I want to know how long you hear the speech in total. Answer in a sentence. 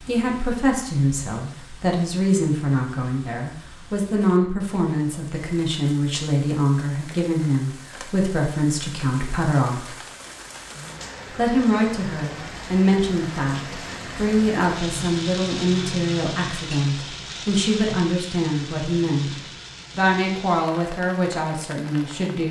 The speech can be heard for 21 seconds in total.